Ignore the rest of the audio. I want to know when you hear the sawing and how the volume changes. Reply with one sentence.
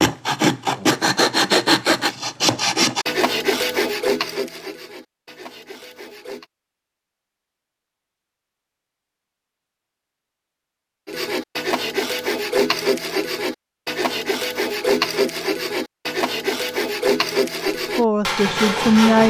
You can hear the sawing from 0.0 to 6.5 s, getting quieter; and from 11.1 to 19.2 s, at a steady volume.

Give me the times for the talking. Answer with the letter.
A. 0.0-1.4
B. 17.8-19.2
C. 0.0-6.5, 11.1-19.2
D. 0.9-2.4
B.